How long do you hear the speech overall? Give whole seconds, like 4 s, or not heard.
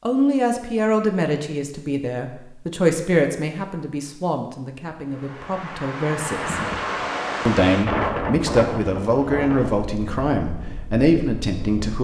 11 s.